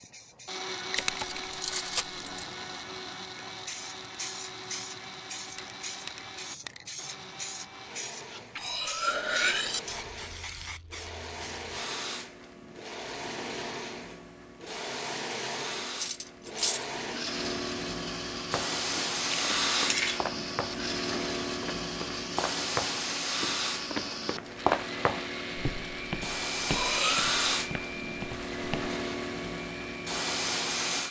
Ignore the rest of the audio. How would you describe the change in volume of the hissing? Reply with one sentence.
The volume of the hissing goes up.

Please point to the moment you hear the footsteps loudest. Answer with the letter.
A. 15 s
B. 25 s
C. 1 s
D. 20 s
B.